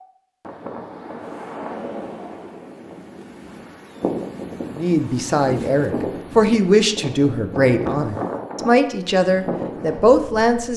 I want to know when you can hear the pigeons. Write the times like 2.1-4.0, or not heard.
not heard.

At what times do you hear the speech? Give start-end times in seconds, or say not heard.
4.8-10.7.